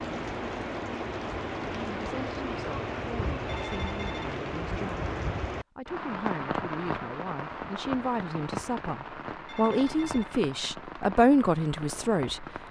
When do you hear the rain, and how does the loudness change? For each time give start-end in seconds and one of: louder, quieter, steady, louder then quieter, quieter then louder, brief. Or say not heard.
0.0-12.6 quieter.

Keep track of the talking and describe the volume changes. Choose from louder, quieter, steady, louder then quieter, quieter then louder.
louder.